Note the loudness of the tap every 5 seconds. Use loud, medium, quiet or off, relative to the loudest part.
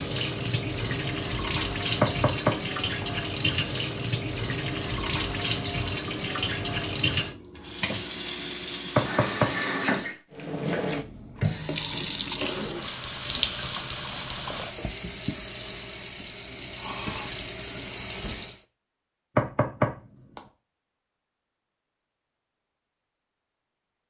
loud, loud, loud, medium, off.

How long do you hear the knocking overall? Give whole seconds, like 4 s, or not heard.
3 s.